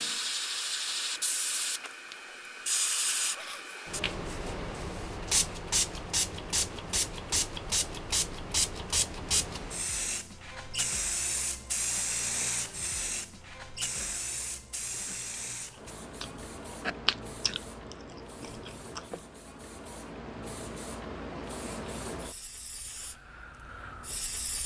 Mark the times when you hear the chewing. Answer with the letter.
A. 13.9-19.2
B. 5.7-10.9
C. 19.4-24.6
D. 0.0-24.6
A.